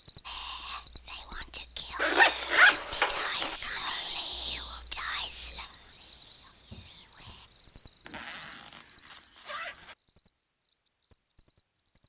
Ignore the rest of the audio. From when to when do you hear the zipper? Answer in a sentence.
The zipper can be heard from 1.9 to 3.5 s and from 8.1 to 9.9 s.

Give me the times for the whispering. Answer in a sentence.
The whispering can be heard from 0.2 to 7.5 s.